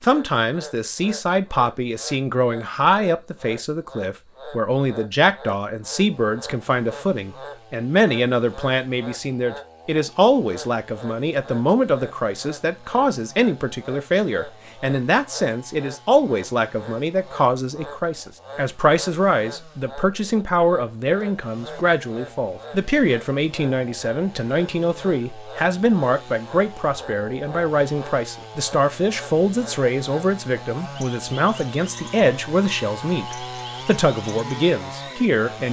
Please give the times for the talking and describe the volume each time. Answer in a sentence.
The talking can be heard from 0.0 to 35.6 s, at a steady volume.